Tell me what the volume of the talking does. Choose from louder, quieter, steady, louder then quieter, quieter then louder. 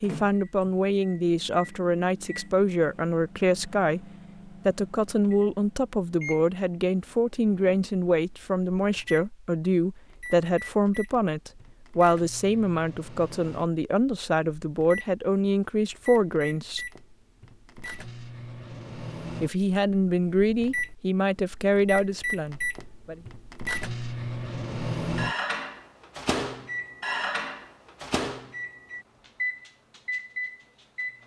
steady.